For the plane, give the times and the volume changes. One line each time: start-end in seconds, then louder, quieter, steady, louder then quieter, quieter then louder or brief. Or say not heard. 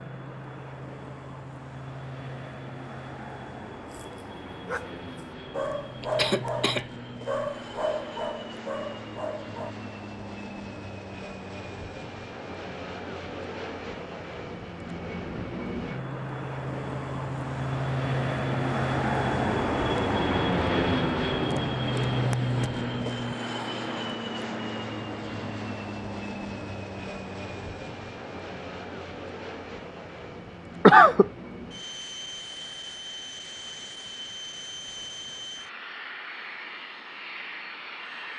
0.0-38.3 louder then quieter.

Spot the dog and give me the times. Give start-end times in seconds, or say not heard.
3.9-9.8.